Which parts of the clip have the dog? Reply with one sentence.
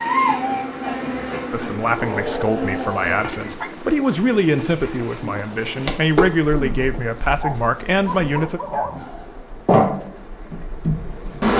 You can hear the dog from 1.9 to 3.7 s and from 7.4 to 9.1 s.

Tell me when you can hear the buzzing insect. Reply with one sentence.
You can hear the buzzing insect from 0.0 to 11.5 s.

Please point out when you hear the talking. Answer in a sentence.
The talking can be heard from 1.5 to 8.6 s.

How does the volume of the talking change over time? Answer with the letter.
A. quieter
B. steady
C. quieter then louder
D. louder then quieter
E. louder
B.